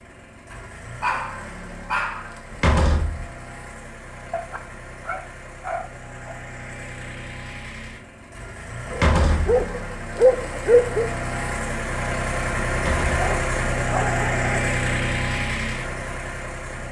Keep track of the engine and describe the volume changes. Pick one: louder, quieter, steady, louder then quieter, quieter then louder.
louder.